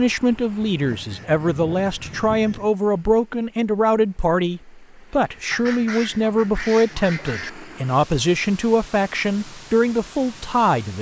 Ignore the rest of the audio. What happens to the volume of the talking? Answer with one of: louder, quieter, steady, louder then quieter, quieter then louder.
steady.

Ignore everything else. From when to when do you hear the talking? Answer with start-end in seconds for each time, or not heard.
0.0-10.9.